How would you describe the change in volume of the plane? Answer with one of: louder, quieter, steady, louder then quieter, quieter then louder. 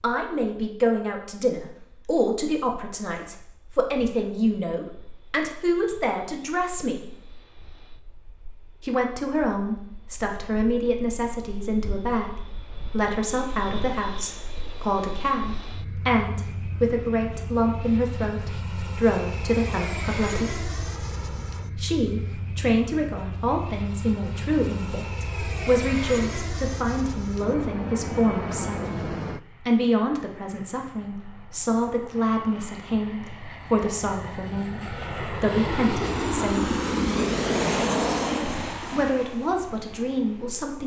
louder.